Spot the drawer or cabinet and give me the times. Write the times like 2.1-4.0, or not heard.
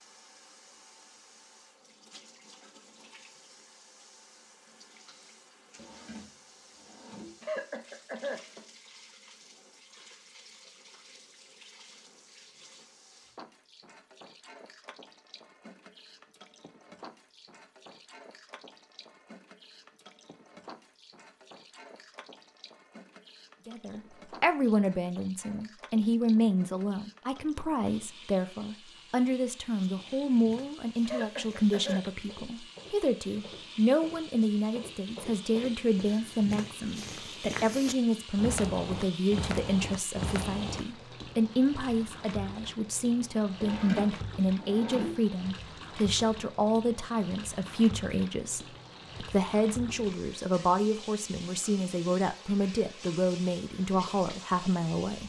5.8-7.3, 43.6-45.1.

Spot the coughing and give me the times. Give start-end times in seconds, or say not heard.
7.4-8.7, 31.1-32.0.